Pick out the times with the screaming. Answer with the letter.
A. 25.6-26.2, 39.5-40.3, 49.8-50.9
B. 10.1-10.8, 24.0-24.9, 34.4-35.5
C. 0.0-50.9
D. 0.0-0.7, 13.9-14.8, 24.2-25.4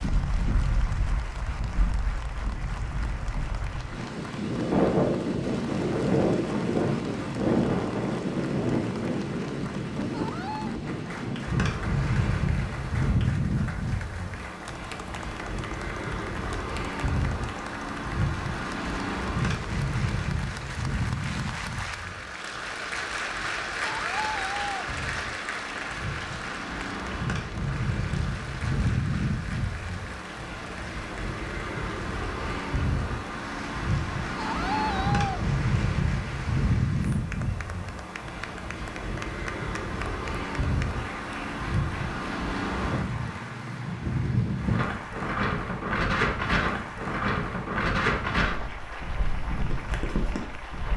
B.